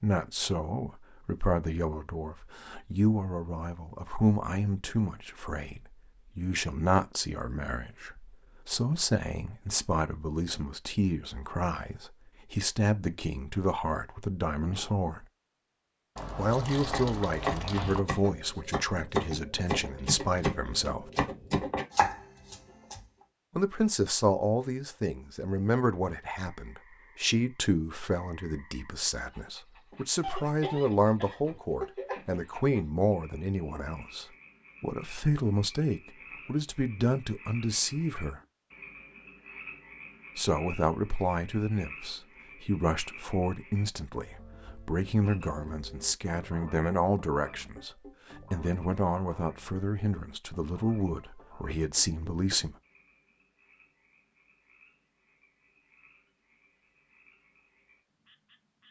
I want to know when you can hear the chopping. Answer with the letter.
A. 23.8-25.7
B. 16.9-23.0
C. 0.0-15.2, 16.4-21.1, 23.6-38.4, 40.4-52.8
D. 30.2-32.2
B.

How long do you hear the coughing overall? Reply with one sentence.
You can hear the coughing for 2 seconds altogether.